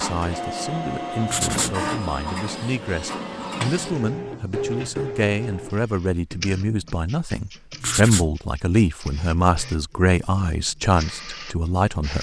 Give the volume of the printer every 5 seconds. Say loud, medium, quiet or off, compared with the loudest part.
loud, medium, medium.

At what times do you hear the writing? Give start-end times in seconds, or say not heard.
1.2-1.8, 7.8-8.3.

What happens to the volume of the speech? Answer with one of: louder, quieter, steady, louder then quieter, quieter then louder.
louder.